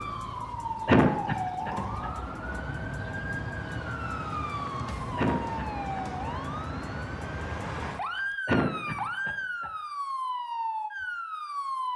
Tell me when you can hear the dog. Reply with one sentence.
The dog can't be heard in this clip.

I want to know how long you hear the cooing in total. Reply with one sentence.
You can't hear the cooing here.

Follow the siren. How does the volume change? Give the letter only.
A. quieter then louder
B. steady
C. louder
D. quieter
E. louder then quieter
B.